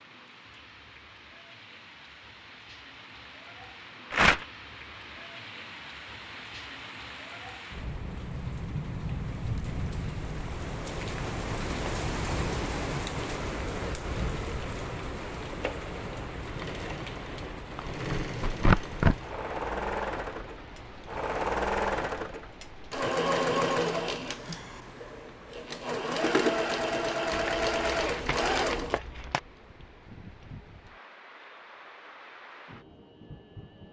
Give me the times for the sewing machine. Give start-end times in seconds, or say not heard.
16.4-29.0.